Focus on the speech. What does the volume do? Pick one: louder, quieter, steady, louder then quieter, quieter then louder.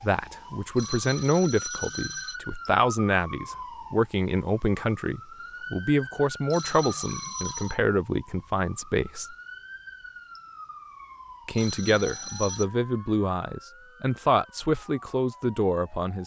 steady.